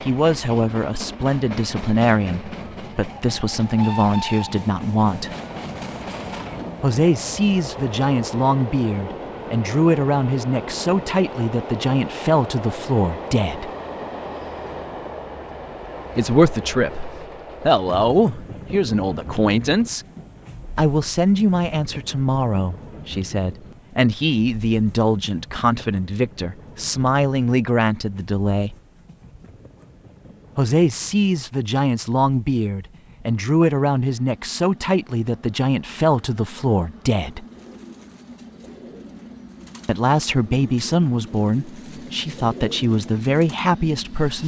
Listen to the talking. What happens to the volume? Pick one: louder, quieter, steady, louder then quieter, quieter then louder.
steady.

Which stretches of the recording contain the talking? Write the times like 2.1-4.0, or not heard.
0.0-5.3, 6.8-13.7, 16.1-20.1, 20.8-28.8, 30.6-37.5, 39.9-44.4.